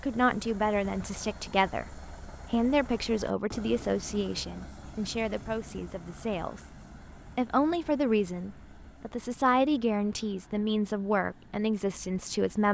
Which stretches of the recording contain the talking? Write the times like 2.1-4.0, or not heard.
0.0-12.6.